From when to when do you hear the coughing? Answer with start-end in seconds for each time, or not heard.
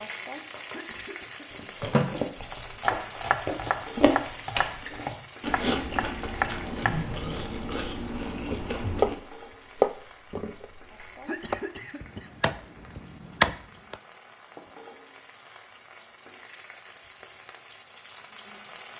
0.7-1.8, 11.2-12.8.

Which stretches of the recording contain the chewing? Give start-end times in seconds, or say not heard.
1.5-9.2.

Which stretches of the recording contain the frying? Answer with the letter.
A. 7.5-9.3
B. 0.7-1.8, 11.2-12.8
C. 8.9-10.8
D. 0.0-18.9
D.